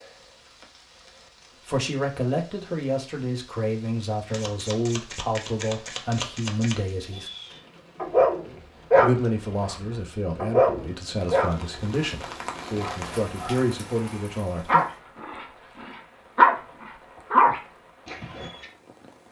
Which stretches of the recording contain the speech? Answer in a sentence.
You can hear the speech from 1.6 to 7.3 s and from 9.0 to 14.8 s.